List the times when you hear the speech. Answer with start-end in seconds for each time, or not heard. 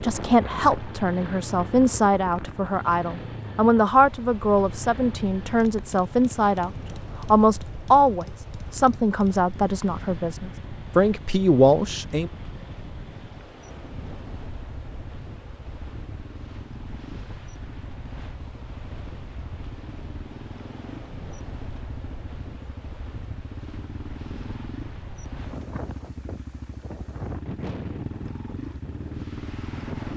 0.0-6.7, 7.3-12.3.